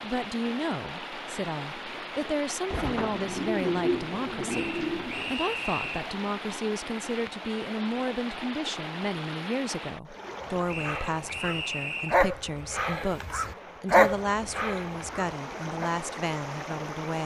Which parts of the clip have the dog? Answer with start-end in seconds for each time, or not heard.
10.4-15.9.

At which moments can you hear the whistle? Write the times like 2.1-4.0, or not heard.
4.5-6.2, 10.7-12.2.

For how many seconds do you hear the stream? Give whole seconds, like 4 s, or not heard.
17 s.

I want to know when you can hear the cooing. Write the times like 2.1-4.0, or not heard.
2.7-5.3.